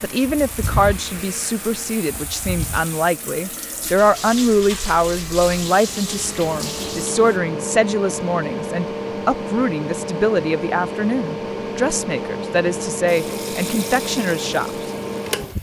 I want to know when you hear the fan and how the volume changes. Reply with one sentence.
You can hear the fan from 0.0 to 15.5 s, getting quieter then louder.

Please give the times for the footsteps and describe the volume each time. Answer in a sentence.
You can't hear the footsteps here.